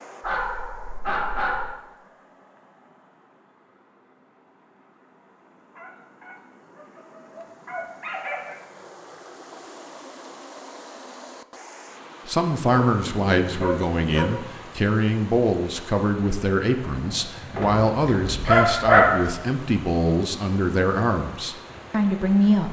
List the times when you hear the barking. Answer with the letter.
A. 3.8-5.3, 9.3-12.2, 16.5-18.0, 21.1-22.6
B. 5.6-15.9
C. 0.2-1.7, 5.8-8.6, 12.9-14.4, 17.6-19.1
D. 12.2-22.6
C.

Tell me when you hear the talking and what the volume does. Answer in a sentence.
The talking can be heard from 12.2 to 22.6 s, at a steady volume.